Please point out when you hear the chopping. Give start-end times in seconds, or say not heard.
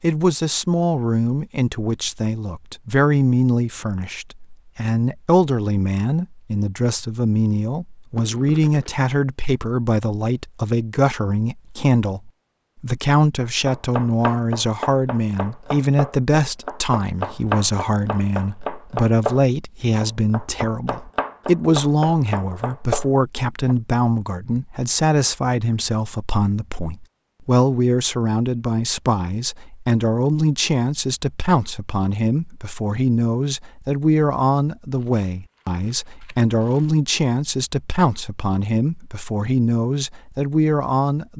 13.7-23.8.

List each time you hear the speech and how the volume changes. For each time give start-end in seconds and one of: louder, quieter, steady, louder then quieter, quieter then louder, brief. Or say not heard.
0.0-41.3 steady.